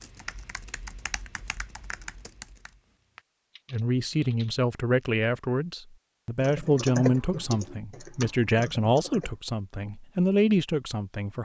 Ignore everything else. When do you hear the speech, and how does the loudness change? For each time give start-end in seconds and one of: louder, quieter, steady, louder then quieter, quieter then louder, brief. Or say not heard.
3.7-11.3 steady.